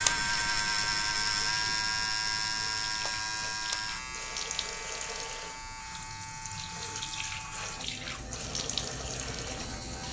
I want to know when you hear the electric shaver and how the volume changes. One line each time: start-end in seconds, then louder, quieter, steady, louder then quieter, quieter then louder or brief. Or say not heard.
0.0-10.0 quieter.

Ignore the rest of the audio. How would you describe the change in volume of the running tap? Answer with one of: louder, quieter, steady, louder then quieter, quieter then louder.
louder.